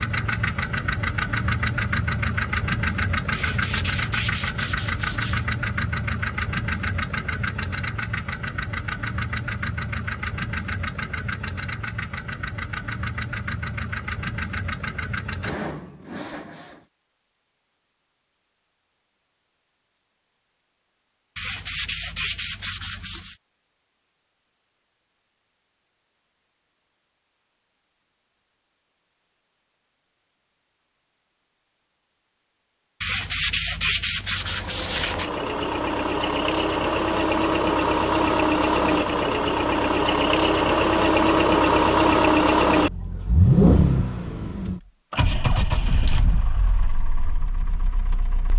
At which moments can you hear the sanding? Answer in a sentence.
The sanding can be heard from 3.3 to 5.5 s, from 21.4 to 23.4 s and from 33.0 to 35.3 s.